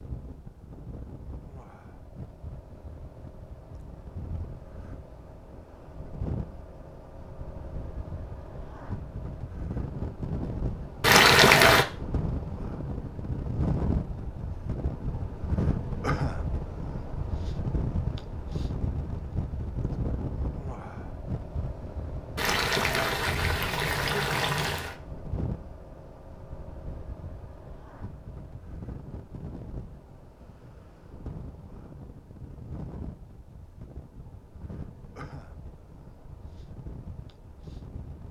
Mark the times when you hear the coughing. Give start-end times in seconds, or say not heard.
not heard.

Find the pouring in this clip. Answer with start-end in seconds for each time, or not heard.
11.0-11.8, 22.4-24.9.